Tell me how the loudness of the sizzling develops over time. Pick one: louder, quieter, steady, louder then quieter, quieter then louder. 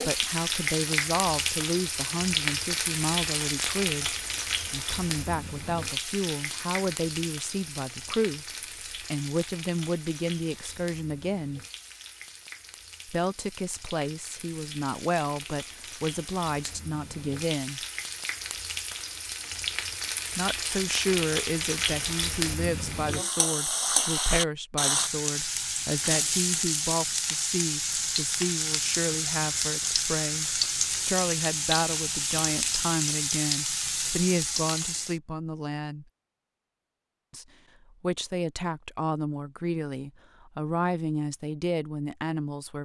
quieter then louder.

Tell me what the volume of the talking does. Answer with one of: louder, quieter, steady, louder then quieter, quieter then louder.
steady.